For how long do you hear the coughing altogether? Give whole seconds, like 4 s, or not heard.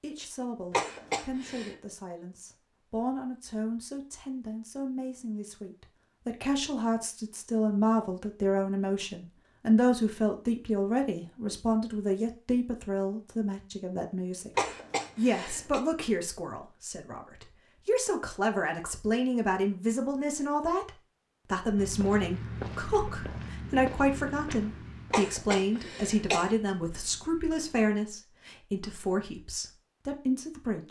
4 s.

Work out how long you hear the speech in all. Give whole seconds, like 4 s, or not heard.
31 s.